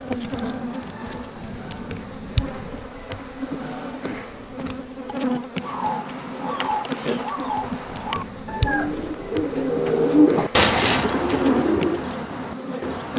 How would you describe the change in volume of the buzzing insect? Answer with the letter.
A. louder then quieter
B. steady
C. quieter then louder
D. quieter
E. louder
B.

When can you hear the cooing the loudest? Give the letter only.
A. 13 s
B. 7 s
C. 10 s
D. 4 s
C.